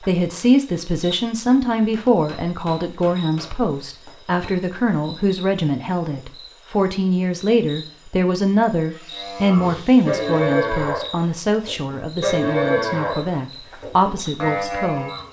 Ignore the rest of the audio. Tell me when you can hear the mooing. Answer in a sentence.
You can hear the mooing from 9.1 to 15.2 s.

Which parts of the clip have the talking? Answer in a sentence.
The talking can be heard from 0.0 to 15.1 s.